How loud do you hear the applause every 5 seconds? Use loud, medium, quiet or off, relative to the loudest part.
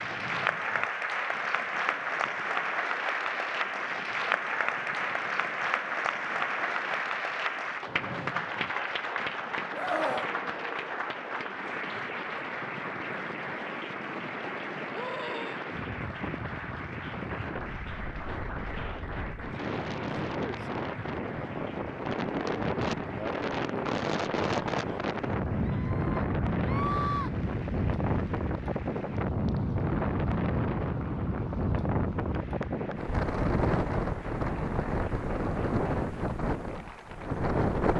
loud, loud, medium, medium, quiet, quiet, quiet, quiet.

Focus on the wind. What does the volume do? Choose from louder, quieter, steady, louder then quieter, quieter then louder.
louder.